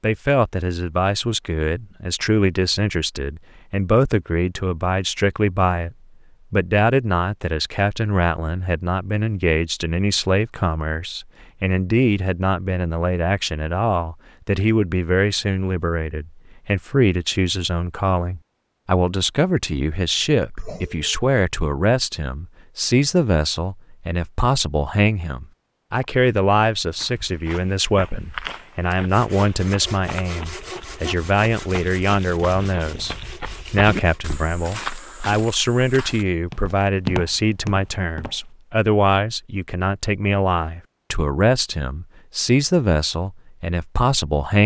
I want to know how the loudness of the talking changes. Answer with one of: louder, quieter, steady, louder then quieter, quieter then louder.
steady.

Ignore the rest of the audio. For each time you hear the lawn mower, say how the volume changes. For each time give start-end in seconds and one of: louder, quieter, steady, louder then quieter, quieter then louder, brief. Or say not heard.
not heard.